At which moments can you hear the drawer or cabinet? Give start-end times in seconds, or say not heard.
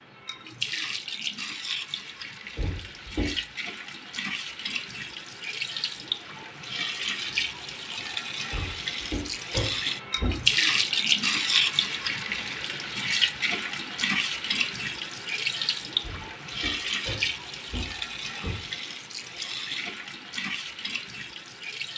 2.5-3.4, 8.5-10.4, 16.0-18.6.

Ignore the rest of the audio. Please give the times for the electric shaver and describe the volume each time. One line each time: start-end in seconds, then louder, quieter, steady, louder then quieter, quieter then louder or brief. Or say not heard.
not heard.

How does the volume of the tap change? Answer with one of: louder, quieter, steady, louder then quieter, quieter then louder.
louder then quieter.